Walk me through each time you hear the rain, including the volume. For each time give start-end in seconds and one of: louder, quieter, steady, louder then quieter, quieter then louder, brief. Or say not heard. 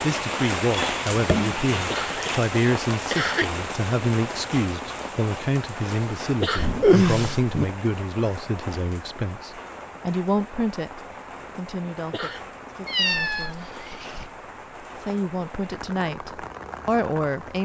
0.0-17.5 quieter.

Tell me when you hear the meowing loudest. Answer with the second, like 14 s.
7 s.